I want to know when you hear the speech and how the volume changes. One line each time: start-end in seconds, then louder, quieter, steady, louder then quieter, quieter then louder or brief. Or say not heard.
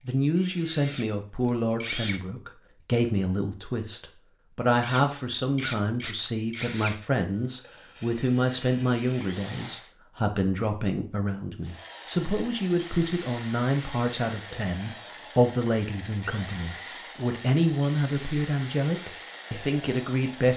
0.1-20.5 steady.